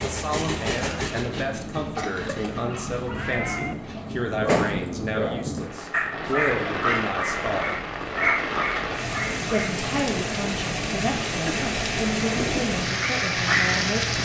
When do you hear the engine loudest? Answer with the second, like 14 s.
1 s.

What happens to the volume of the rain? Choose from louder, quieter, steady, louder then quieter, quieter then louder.
louder.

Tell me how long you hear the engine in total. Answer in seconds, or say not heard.
4 s.